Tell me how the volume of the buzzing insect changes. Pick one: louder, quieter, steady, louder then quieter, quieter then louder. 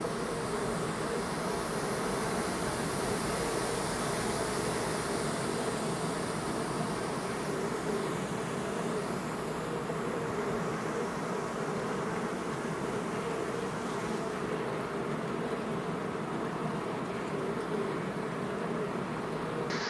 steady.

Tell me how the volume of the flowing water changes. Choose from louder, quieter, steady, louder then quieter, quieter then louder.
quieter.